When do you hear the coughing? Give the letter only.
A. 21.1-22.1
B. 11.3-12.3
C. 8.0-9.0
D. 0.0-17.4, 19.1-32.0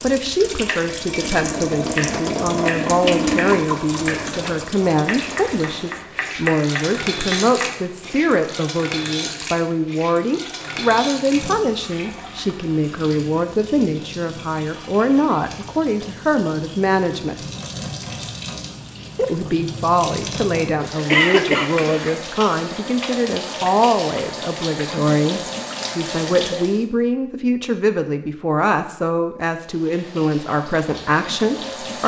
A.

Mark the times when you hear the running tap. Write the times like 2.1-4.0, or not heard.
0.0-26.9, 29.6-32.0.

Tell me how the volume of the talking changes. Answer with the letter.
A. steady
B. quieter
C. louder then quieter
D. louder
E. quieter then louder
A.